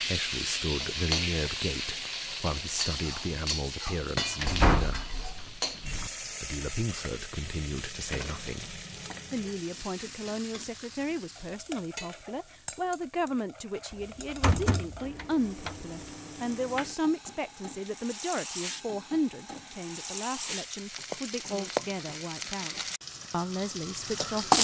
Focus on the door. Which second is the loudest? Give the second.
5 s.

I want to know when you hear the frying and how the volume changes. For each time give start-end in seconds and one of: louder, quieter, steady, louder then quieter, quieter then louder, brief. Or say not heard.
0.0-24.5 quieter then louder.